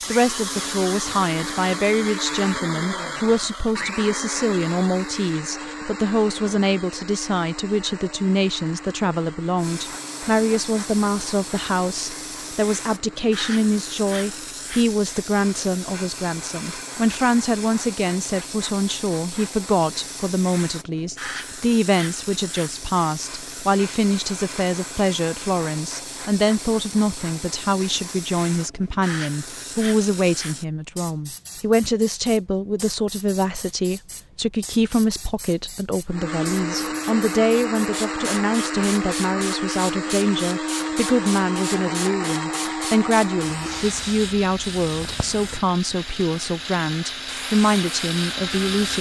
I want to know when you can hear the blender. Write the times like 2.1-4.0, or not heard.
0.0-14.5, 36.0-48.9.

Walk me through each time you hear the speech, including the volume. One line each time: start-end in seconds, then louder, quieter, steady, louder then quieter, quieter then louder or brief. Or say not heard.
0.1-48.9 steady.